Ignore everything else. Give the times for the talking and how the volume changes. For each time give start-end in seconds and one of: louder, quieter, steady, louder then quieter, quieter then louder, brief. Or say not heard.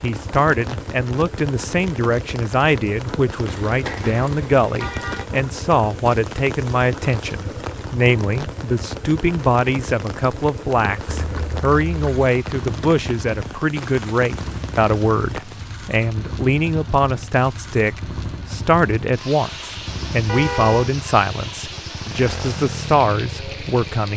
0.0-24.1 steady.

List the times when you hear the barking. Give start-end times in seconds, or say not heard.
not heard.